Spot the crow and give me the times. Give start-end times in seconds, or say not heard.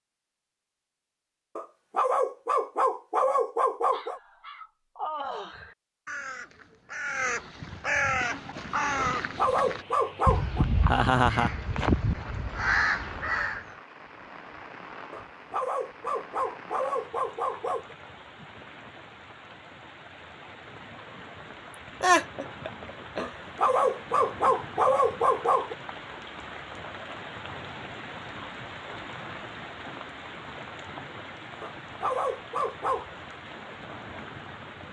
3.9-13.7.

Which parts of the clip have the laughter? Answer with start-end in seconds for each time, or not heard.
10.8-11.5, 22.0-23.7.